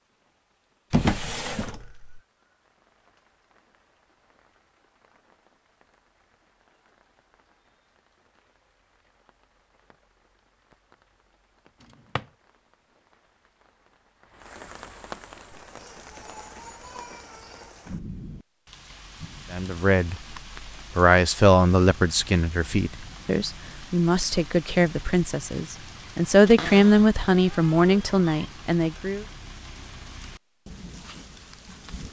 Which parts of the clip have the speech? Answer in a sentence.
You can hear the speech from 19.5 to 20.1 s and from 20.9 to 29.2 s.